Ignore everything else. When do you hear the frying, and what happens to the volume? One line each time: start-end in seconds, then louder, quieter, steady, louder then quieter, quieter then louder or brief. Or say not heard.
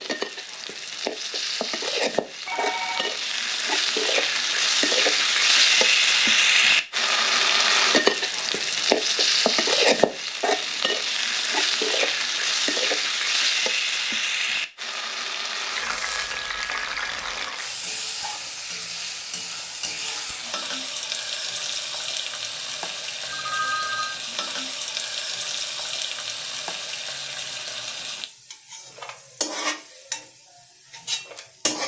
0.0-31.8 quieter.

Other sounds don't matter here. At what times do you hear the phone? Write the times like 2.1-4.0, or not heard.
2.5-3.1, 15.8-17.5, 23.2-24.2.